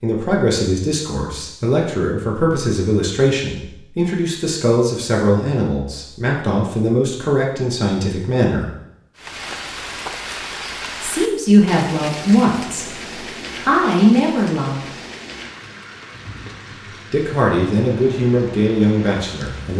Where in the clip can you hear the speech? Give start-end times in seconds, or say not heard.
0.0-8.7, 11.0-14.8, 17.1-19.7.